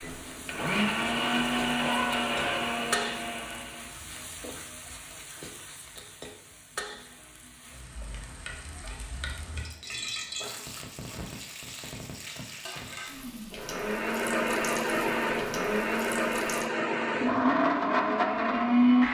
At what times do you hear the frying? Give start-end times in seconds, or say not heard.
0.0-16.7.